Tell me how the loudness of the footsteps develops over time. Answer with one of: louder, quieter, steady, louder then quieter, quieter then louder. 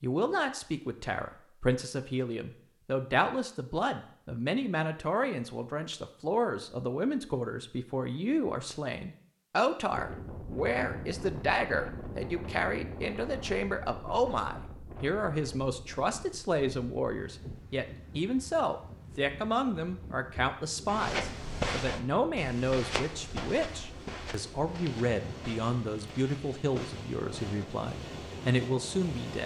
quieter.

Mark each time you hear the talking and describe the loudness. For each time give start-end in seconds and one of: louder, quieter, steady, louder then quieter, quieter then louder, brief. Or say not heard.
0.0-29.4 steady.